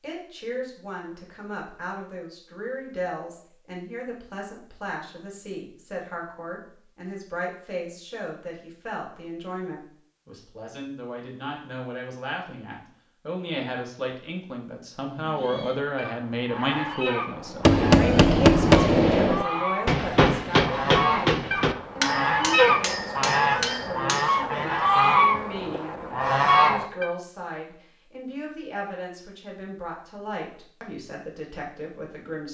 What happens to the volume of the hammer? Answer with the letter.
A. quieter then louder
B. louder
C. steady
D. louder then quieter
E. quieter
E.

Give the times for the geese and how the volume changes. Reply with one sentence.
The geese can be heard from 15.2 to 27.1 s, getting louder.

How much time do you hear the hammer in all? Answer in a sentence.
The hammer can be heard for 7 seconds in total.